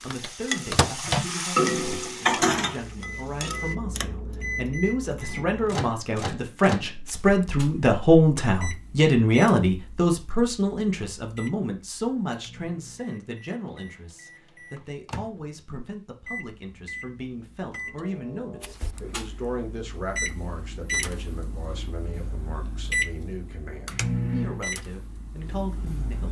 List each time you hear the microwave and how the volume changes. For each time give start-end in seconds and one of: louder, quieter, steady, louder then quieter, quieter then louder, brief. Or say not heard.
0.0-1.4 brief
2.2-26.2 quieter then louder.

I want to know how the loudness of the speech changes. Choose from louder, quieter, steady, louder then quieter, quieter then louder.
louder then quieter.